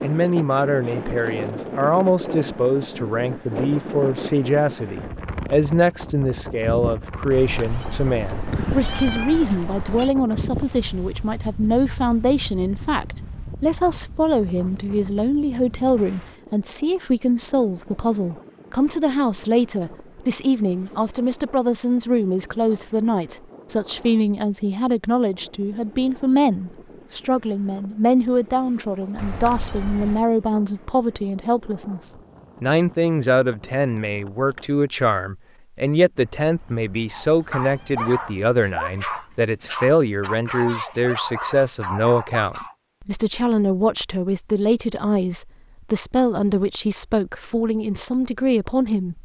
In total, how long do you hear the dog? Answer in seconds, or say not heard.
6 s.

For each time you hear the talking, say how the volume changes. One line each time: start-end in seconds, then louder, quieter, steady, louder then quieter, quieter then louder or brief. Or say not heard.
0.0-49.2 steady.